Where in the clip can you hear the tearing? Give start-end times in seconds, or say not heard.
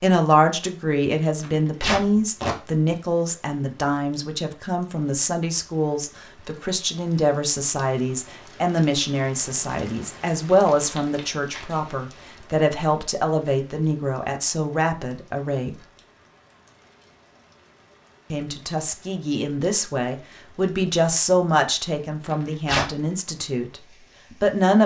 1.4-2.5, 10.7-12.2, 22.2-22.9.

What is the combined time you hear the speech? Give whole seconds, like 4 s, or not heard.
22 s.